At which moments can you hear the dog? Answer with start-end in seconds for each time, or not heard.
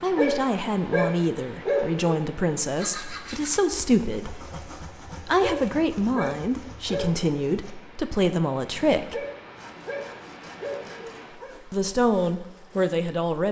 0.1-2.1, 5.4-7.3, 9.1-11.6.